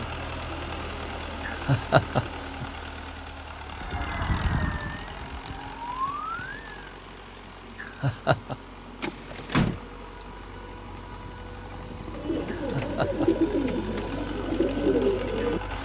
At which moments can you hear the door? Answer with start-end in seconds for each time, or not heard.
9.0-10.2.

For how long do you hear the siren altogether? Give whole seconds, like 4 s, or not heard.
3 s.